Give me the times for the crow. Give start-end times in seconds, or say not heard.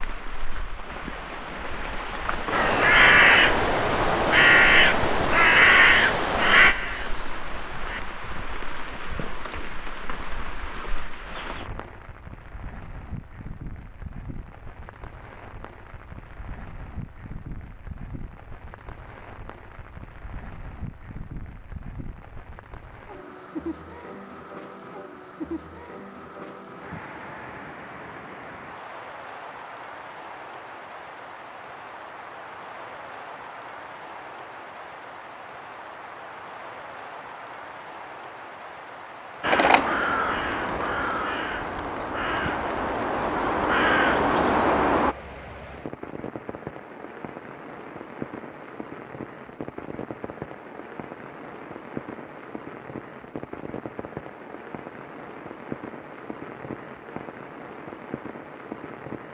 2.5-8.0, 39.4-45.1.